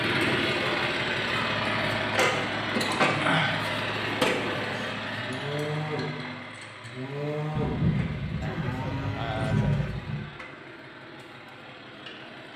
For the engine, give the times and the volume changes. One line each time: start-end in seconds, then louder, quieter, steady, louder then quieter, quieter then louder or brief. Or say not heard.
0.0-12.5 quieter.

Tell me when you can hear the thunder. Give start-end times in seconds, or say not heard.
7.5-10.2.